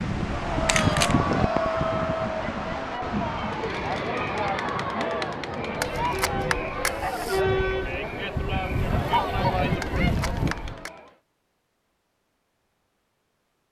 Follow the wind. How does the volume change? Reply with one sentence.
The loudness of the wind goes down, then up.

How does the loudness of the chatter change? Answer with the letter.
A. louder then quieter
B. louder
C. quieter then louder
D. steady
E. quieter
D.